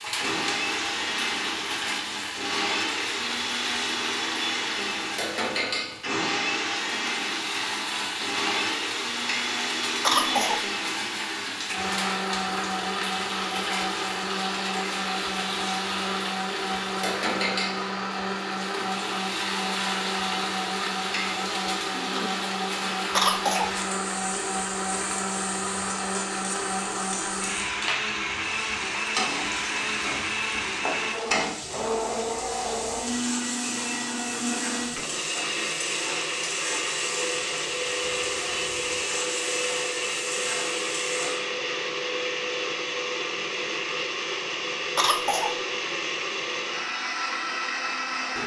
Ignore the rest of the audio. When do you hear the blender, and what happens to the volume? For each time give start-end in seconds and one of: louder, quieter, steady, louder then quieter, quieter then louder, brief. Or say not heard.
0.1-48.4 steady.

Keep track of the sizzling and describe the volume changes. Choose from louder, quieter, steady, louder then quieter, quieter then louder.
steady.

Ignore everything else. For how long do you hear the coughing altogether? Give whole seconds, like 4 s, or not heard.
2 s.